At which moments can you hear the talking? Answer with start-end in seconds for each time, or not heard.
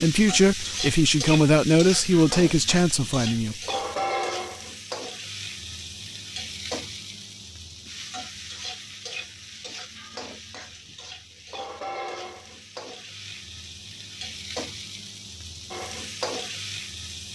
0.0-3.5.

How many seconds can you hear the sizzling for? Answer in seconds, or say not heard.
17 s.